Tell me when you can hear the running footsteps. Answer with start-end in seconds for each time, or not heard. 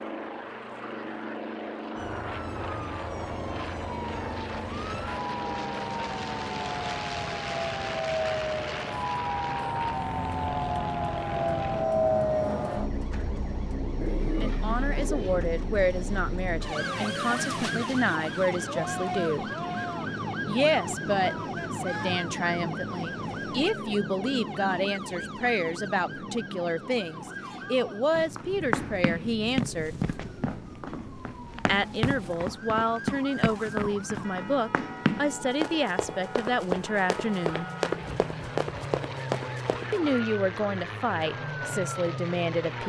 28.1-40.0.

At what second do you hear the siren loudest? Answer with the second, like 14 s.
12 s.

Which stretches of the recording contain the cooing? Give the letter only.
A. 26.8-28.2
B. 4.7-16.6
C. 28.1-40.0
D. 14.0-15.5
D.